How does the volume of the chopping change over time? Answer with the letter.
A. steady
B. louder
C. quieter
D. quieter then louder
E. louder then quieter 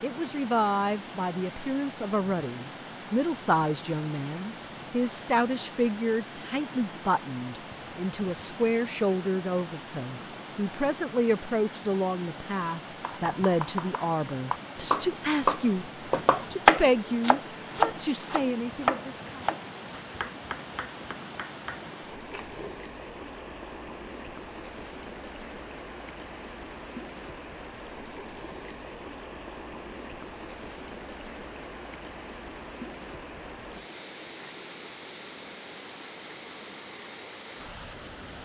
E.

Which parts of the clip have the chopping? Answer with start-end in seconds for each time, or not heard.
13.0-22.8.